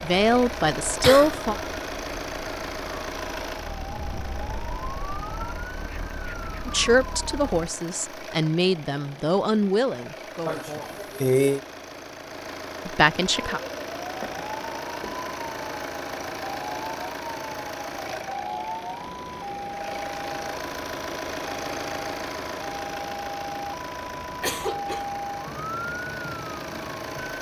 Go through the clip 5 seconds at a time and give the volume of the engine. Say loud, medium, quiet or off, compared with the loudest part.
loud, medium, loud, loud, loud, loud.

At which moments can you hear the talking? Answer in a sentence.
You can hear the talking from 0.0 to 1.6 s, from 6.7 to 11.1 s and from 12.8 to 13.6 s.